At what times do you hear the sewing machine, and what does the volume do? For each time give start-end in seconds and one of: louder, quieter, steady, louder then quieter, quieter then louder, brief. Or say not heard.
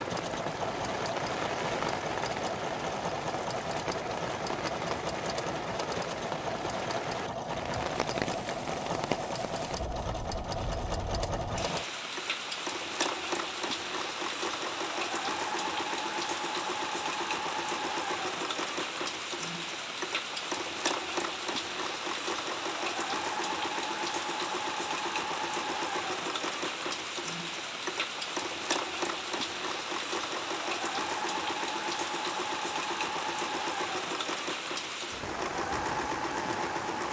0.0-37.0 steady.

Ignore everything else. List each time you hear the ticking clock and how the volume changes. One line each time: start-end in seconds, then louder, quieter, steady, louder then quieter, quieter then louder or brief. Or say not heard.
not heard.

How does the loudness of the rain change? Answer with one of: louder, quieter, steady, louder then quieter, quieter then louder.
steady.